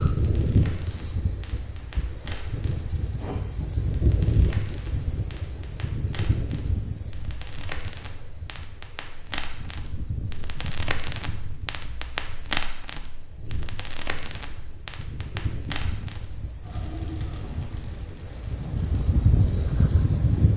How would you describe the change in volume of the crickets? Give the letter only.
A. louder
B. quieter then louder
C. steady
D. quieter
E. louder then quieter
B.